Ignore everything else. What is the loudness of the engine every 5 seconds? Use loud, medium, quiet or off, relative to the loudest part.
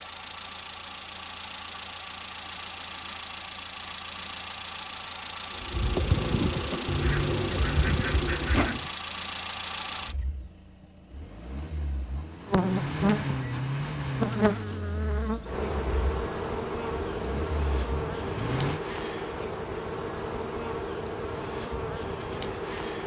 loud, loud, loud, loud, off.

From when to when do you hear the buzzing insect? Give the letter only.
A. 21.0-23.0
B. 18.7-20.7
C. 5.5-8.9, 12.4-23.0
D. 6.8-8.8
C.